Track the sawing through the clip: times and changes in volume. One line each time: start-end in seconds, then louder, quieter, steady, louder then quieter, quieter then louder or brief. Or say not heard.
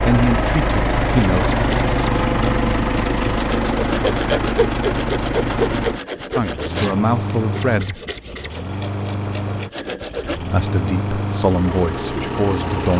0.9-10.4 louder then quieter.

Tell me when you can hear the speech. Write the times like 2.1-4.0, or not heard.
0.0-1.5, 6.3-8.0, 10.3-12.9.